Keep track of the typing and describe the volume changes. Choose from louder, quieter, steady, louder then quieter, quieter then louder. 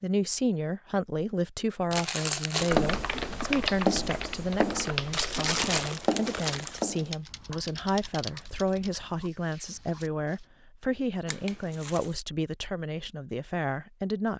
quieter.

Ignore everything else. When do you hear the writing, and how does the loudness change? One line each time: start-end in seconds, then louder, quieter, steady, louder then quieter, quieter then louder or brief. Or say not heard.
2.5-10.2 quieter.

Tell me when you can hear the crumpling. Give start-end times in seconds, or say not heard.
1.9-2.8, 5.1-6.8, 11.2-12.2.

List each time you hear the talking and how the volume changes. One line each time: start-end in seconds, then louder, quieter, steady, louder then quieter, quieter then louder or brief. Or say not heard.
0.0-14.3 steady.